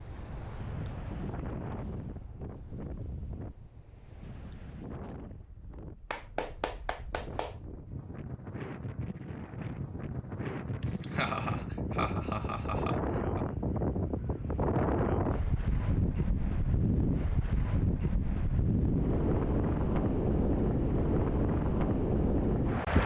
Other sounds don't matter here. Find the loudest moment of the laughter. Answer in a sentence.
The loudest moment of the laughter is at 11 seconds.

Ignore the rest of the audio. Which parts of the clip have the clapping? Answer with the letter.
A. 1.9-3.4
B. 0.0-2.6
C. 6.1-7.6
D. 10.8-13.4
C.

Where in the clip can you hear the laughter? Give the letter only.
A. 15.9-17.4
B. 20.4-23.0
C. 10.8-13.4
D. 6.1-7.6
C.